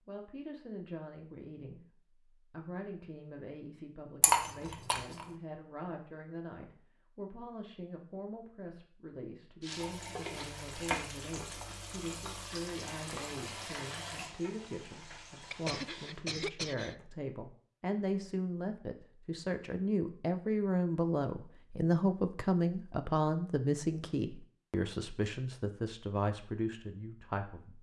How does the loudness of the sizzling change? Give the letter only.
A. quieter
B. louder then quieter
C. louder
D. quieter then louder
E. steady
A.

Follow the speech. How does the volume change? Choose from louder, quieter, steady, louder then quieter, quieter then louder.
louder.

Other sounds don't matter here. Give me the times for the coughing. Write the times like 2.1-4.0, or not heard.
15.5-16.9.